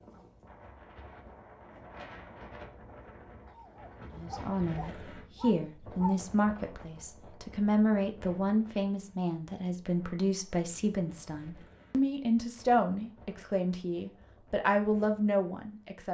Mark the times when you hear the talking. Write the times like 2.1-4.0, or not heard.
4.1-16.0.